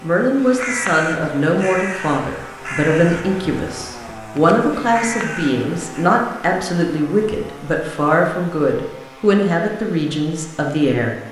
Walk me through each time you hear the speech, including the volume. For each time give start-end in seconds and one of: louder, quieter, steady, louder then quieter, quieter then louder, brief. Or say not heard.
0.0-11.2 steady.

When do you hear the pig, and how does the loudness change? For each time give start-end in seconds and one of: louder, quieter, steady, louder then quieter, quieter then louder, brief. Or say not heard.
not heard.